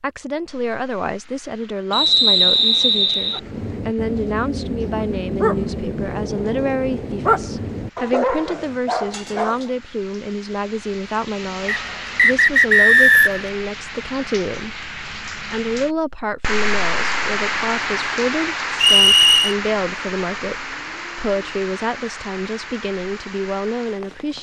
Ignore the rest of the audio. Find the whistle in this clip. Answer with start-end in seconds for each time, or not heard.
1.9-3.4, 11.7-13.5, 18.8-19.6.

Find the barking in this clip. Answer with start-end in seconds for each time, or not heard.
3.3-9.7.